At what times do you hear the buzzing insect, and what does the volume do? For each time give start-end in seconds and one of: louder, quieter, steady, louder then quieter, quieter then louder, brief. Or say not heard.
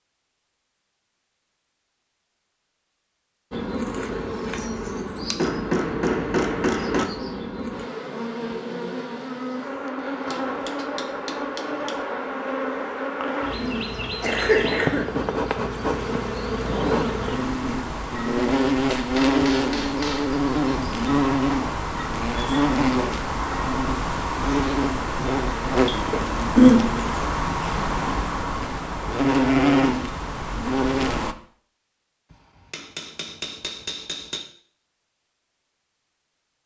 3.5-31.4 louder.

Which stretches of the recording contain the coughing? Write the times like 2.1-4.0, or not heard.
13.6-15.1, 26.1-26.8.